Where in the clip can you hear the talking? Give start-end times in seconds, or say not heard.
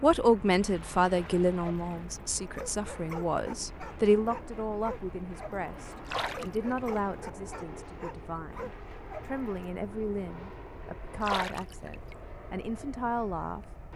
0.0-13.7.